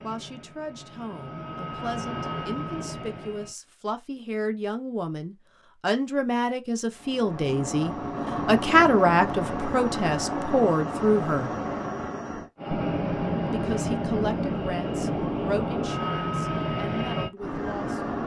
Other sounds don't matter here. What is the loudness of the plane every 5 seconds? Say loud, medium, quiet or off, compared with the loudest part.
medium, loud, loud, loud.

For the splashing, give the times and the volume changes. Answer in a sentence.
The splashing can't be heard in this clip.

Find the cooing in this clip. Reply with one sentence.
You can't hear the cooing here.